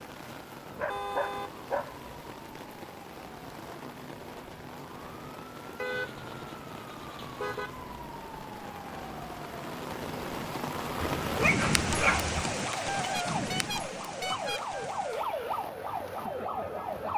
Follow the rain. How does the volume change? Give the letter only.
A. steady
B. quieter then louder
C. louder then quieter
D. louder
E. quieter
C.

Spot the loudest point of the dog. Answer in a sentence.
The volume of the dog peaks at 12 seconds.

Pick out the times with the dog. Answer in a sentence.
The dog can be heard from 0.7 to 2.0 s and from 11.0 to 12.4 s.